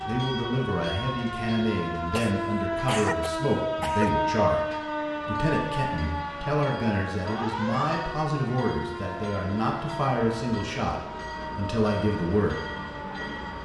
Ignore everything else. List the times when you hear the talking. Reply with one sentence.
You can hear the talking from 0.1 to 12.6 s.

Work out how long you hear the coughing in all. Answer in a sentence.
The coughing can be heard for 2 seconds in total.